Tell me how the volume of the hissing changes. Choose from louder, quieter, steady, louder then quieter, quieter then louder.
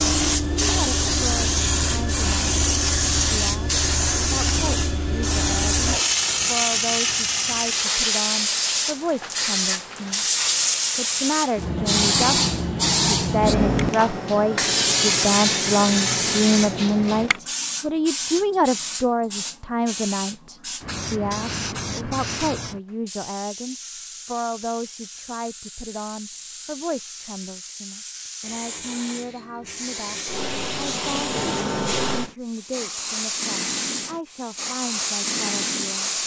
quieter then louder.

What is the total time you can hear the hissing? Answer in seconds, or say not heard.
36 s.